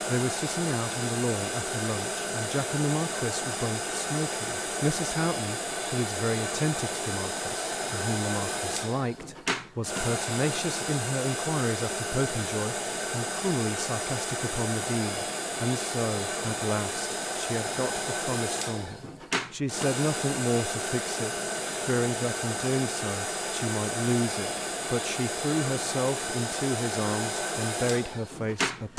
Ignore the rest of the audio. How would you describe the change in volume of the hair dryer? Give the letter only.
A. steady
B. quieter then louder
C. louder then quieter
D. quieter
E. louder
A.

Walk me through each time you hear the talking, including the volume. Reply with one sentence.
The talking can be heard from 0.1 to 28.9 s, at a steady volume.